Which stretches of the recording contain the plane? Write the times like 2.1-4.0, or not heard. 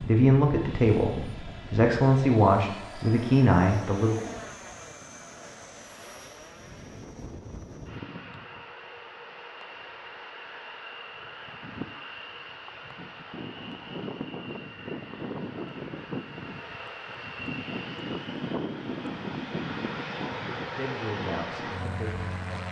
0.0-22.6.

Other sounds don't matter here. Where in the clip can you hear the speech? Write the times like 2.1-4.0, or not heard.
0.1-4.3, 20.3-22.6.